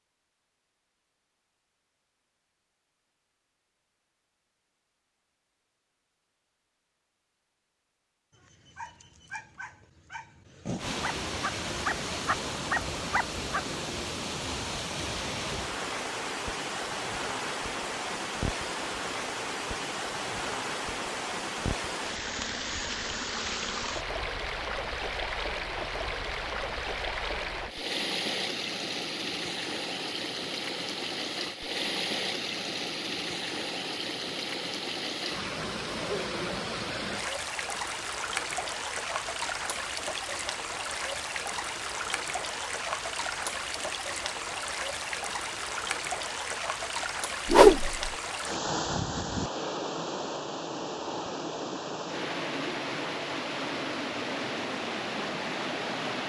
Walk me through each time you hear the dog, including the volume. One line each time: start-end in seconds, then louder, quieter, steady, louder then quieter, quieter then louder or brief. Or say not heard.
8.3-13.6 louder.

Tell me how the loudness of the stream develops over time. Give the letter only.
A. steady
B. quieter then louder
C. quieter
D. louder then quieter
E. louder
A.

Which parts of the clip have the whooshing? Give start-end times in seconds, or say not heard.
47.5-48.0.